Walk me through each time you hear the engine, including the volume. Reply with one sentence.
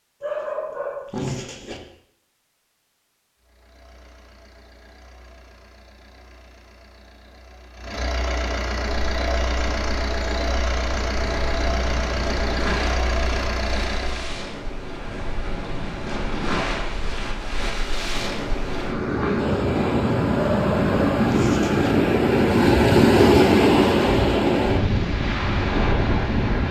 You can hear the engine from 3.4 to 14.3 s, getting louder.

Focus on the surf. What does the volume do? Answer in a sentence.
The volume of the surf goes up.